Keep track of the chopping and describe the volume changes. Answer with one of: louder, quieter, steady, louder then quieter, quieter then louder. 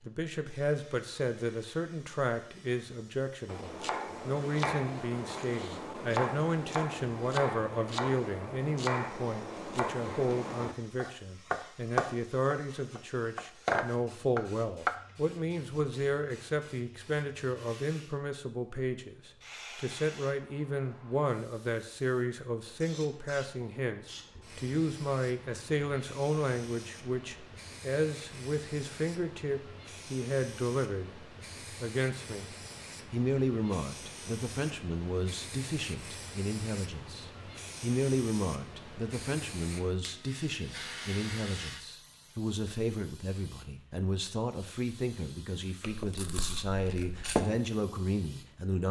louder.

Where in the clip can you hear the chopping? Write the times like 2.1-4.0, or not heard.
3.5-14.9.